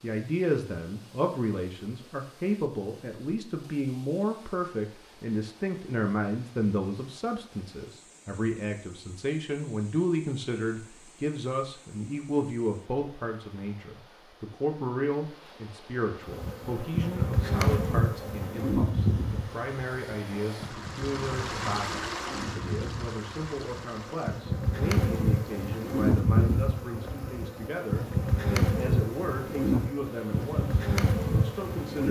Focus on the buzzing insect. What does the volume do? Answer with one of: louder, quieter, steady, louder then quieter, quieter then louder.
quieter then louder.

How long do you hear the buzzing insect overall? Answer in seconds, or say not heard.
16 s.